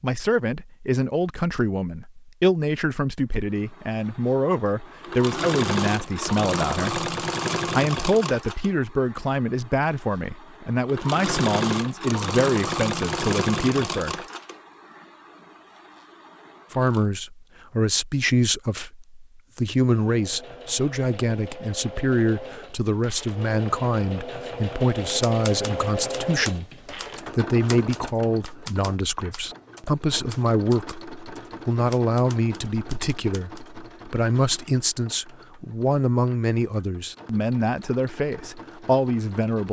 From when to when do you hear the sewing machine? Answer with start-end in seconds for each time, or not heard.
3.5-17.1, 19.9-39.6.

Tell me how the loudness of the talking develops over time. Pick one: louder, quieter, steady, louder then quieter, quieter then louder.
steady.